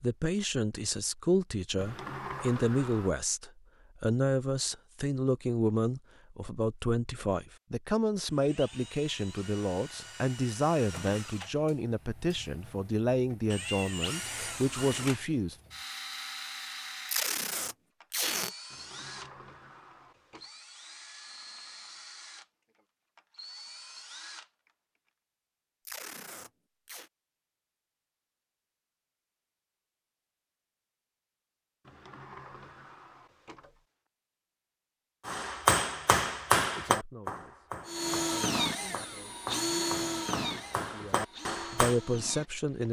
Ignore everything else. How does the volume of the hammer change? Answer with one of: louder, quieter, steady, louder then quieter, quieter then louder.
quieter then louder.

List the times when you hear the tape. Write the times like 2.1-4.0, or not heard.
17.1-18.5, 25.9-27.1.